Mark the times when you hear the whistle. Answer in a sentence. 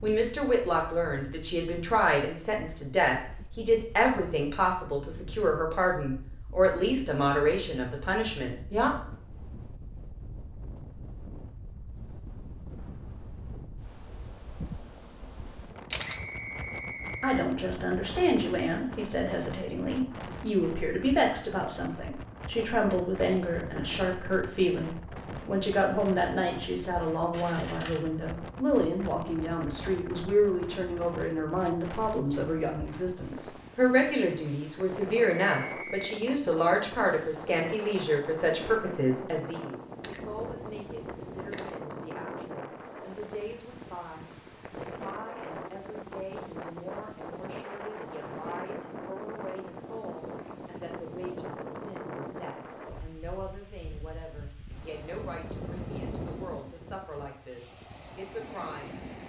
The whistle can be heard from 16.1 to 17.4 s, from 35.2 to 36.1 s and from 49.6 to 50.6 s.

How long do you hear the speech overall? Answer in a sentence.
The speech can be heard for 51 seconds in total.